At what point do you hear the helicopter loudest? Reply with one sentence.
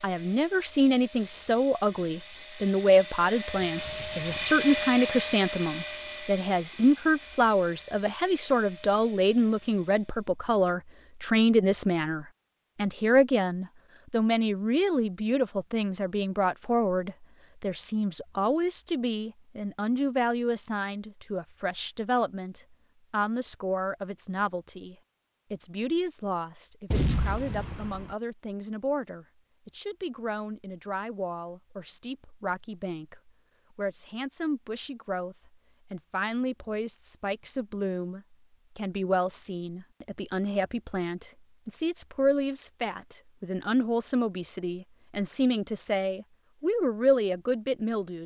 The loudest moment of the helicopter is at 5 seconds.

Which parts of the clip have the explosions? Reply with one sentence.
You can hear the explosions from 26.9 to 28.1 s.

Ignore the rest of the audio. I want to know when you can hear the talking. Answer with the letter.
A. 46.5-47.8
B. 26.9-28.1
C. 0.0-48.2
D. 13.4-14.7
C.